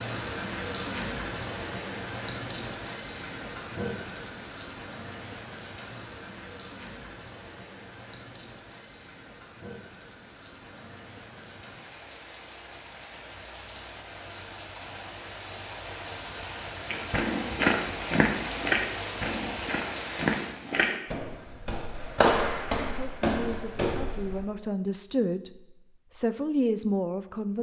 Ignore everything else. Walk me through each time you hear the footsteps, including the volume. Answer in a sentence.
The footsteps can be heard from 16.9 to 24.4 s, at a steady volume.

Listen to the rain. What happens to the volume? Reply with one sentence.
The loudness of the rain goes down, then up.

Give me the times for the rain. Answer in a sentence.
You can hear the rain from 0.0 to 20.6 s.